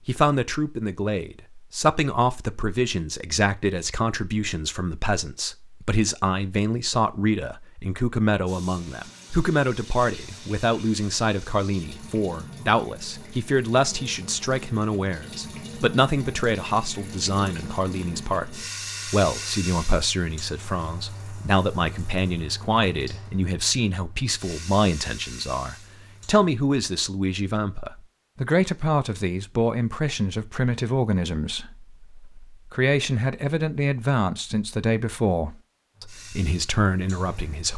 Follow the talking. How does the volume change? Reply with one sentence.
The loudness of the talking stays about the same.